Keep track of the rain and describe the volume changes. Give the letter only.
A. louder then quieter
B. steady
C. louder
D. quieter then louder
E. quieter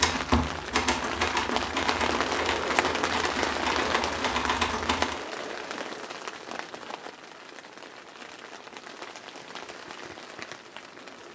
E.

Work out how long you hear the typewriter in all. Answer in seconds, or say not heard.
5 s.